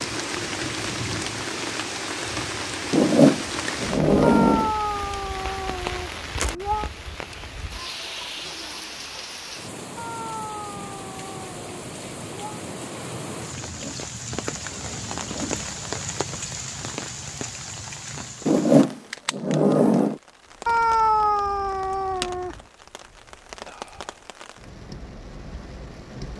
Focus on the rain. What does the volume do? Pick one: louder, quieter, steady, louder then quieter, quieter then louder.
quieter.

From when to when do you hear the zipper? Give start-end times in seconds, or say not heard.
2.9-4.8, 13.6-15.6, 18.4-20.2.